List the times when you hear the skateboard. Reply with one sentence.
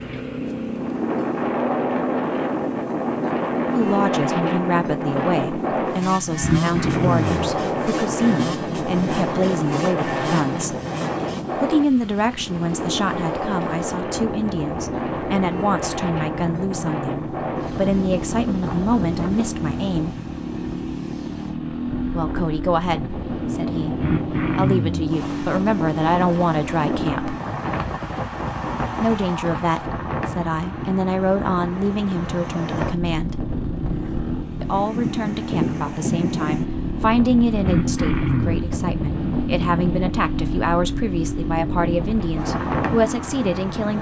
The skateboard can't be heard in this clip.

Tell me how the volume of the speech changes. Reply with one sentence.
The loudness of the speech stays about the same.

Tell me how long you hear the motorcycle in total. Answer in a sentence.
You can hear the motorcycle for 44 seconds altogether.